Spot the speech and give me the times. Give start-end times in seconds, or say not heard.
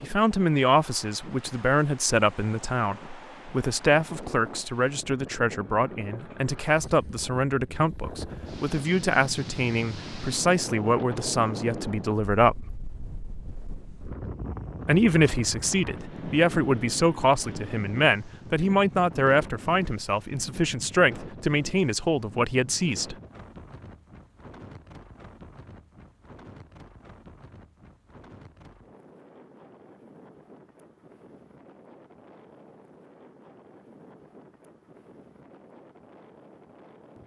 0.0-12.7, 14.8-23.1.